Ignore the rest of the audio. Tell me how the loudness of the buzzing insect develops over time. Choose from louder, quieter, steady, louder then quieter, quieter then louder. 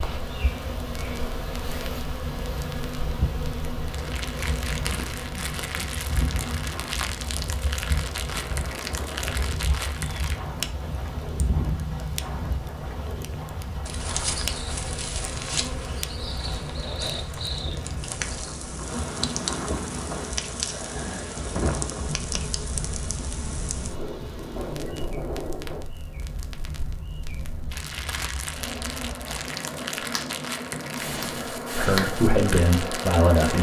quieter then louder.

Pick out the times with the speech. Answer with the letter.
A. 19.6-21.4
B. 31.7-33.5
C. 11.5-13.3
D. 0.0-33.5
B.